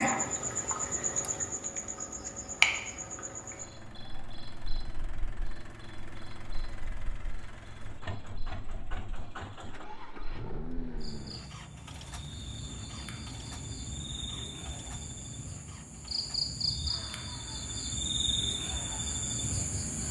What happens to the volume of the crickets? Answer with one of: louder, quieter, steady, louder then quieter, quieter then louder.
quieter then louder.